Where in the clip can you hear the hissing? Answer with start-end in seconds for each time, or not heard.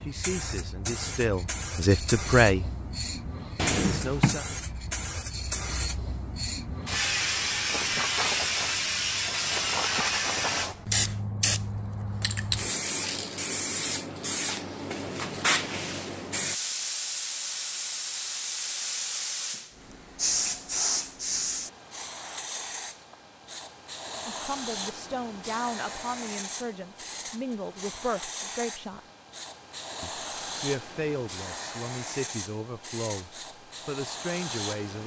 0.0-35.0.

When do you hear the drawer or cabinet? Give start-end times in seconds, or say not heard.
3.5-4.3.